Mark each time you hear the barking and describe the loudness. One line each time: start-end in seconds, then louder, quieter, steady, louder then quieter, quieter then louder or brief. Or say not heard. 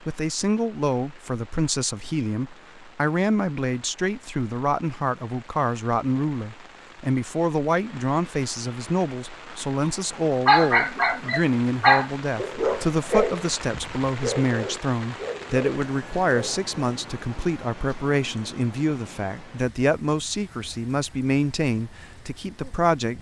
9.8-16.6 quieter.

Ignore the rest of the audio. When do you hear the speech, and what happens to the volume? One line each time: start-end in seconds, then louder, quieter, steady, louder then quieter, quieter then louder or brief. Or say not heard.
0.0-23.1 steady.